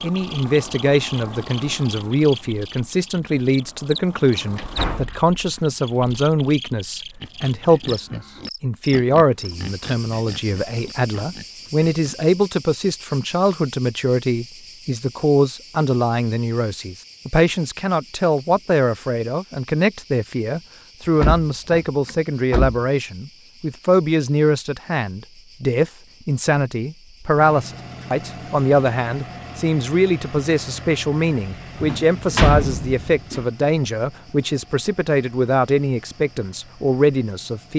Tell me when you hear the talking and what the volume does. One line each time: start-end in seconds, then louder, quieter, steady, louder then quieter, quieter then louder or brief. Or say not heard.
0.0-37.7 steady.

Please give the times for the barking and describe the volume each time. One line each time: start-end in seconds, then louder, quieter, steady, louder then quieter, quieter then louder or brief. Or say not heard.
not heard.